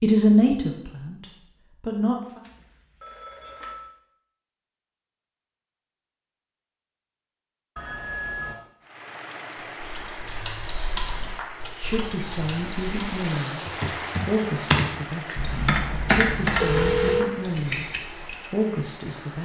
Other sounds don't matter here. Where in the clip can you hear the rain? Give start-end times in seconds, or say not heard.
8.8-19.4.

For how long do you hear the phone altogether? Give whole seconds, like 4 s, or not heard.
4 s.